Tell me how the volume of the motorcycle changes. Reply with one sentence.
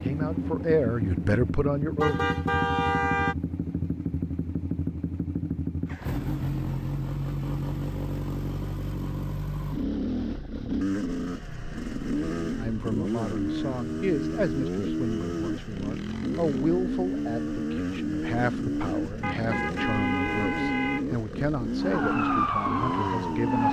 The loudness of the motorcycle stays about the same.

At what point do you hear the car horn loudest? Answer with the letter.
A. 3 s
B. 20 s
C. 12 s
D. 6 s
A.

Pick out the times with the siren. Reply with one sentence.
You can hear the siren from 21.8 to 23.6 s.